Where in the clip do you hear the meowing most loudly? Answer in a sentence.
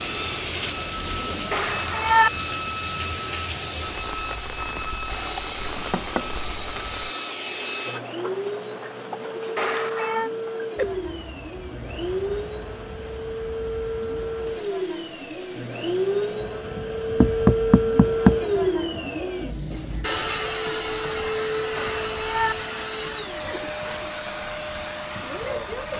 The volume of the meowing peaks at 2 seconds.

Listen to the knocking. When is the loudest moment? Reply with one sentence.
The loudest moment of the knocking is at 18 seconds.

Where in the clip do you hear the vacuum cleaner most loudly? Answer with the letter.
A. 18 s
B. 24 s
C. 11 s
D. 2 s
A.